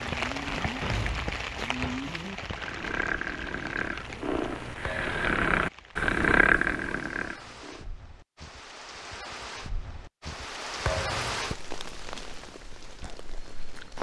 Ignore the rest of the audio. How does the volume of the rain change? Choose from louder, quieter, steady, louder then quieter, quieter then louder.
quieter then louder.